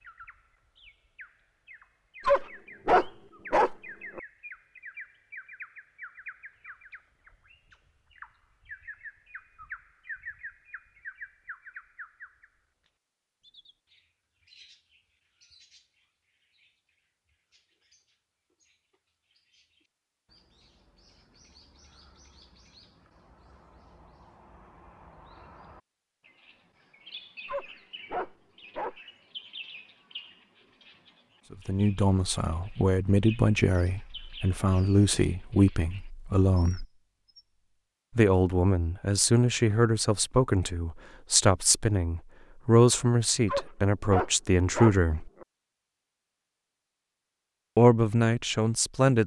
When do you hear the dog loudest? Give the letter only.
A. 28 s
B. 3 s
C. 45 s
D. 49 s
B.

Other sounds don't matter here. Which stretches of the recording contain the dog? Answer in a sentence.
You can hear the dog from 2.2 to 4.2 s, from 27.4 to 29.0 s and from 43.5 to 45.5 s.